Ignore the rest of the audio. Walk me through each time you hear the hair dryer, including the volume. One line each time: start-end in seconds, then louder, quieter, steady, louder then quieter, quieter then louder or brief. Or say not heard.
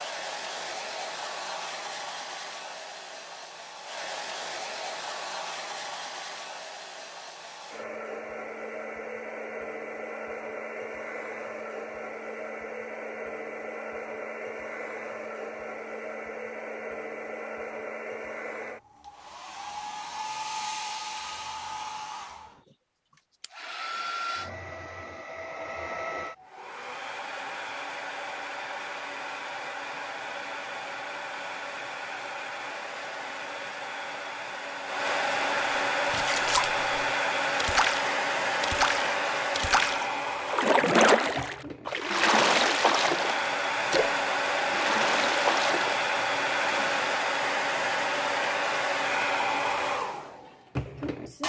0.0-51.4 louder.